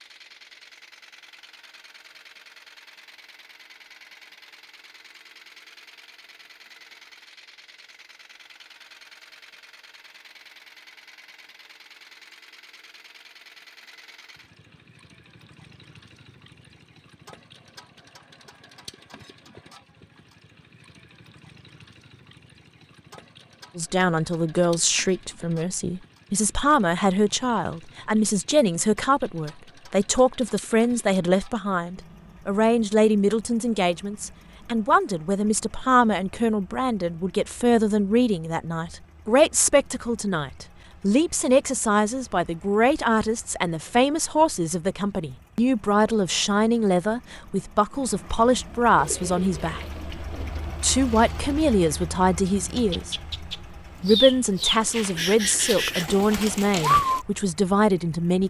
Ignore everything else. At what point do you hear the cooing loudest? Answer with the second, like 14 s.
57 s.